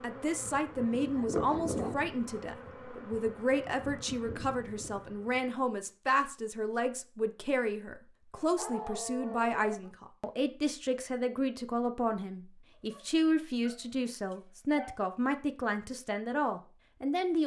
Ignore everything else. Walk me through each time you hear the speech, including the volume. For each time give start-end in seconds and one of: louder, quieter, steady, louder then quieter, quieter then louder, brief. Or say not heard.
0.0-17.4 steady.